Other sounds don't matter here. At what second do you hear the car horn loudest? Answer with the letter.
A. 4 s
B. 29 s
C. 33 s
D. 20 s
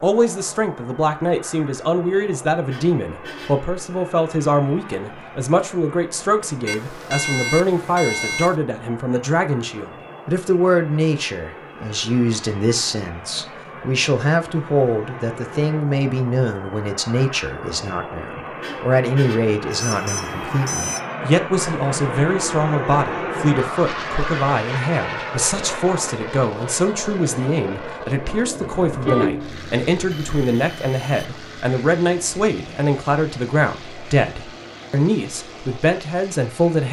B.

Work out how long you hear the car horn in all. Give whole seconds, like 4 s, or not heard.
3 s.